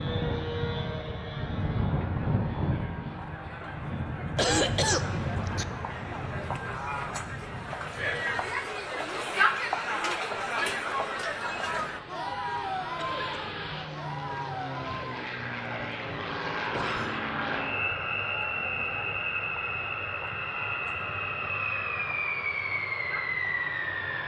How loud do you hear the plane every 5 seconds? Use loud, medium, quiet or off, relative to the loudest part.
loud, medium, medium, loud, loud.